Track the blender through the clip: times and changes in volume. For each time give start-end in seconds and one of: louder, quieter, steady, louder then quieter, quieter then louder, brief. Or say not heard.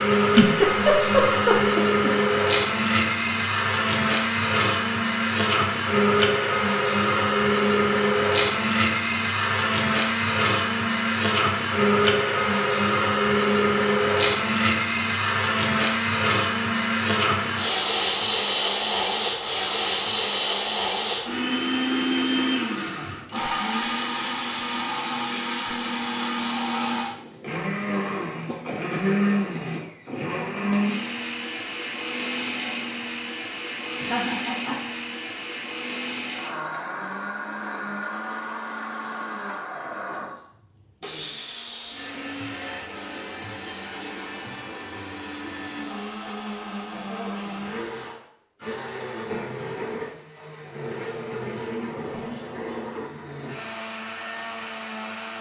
0.0-55.3 quieter.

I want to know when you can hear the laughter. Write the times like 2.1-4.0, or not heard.
0.1-2.1, 33.9-34.8.